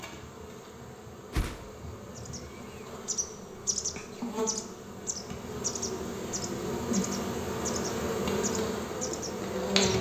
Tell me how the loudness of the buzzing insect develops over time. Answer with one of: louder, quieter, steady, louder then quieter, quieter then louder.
louder.